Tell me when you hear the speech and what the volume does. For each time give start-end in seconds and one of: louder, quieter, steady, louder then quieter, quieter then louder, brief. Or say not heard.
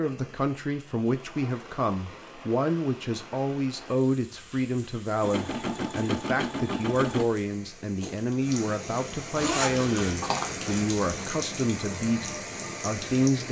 0.0-13.4 steady.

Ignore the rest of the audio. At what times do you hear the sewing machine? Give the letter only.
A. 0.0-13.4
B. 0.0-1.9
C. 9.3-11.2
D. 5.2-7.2
D.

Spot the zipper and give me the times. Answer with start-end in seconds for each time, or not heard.
9.3-11.2.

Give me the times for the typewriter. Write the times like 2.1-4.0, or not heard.
not heard.